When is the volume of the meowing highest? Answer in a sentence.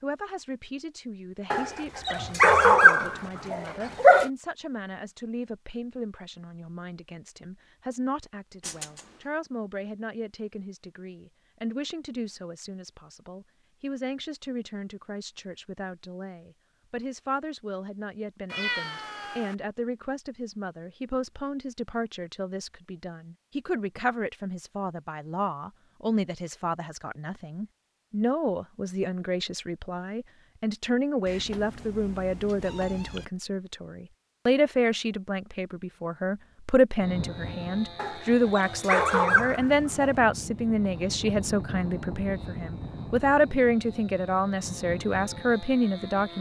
The loudest moment of the meowing is at 19 seconds.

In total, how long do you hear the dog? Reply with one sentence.
The dog can be heard for 5 seconds in total.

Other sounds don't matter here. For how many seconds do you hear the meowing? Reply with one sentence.
You can hear the meowing for 4 seconds altogether.